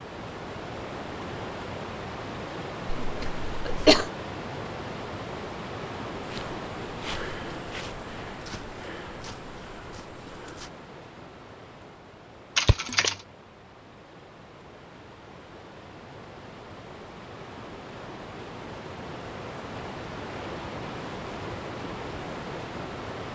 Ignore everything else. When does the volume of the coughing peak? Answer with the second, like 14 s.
4 s.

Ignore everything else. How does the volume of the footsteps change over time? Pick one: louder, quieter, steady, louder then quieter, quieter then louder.
quieter.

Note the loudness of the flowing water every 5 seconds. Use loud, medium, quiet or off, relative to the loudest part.
loud, loud, medium, medium, loud.